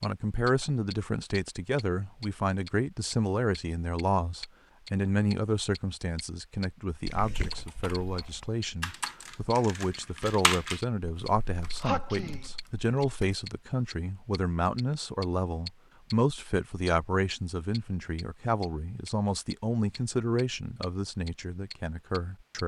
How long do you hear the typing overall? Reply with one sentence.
The typing can be heard for 6 seconds in total.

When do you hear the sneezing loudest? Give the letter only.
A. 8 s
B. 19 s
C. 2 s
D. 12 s
D.